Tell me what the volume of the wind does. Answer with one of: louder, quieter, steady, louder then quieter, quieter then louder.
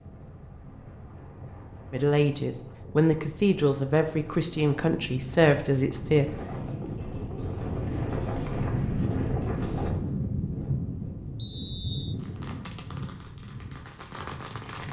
louder then quieter.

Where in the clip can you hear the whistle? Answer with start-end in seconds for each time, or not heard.
11.3-12.2.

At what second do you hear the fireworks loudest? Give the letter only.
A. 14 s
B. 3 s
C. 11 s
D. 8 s
A.